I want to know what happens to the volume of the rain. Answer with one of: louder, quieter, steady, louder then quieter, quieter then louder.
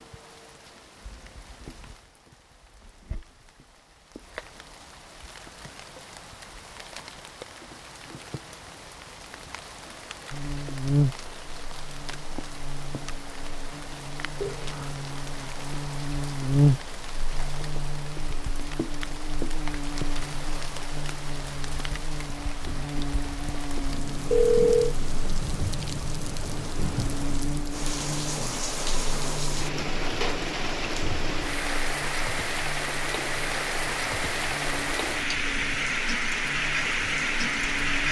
louder.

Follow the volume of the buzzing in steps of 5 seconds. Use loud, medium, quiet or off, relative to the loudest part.
off, off, loud, loud, medium, medium, quiet, quiet.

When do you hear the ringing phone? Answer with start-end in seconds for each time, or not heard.
14.4-15.1, 24.3-24.9.